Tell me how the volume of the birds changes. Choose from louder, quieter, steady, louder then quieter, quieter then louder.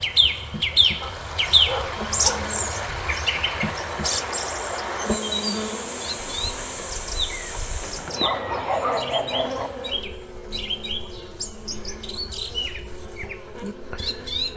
quieter.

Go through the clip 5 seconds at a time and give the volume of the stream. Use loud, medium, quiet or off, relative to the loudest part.
loud, loud, off.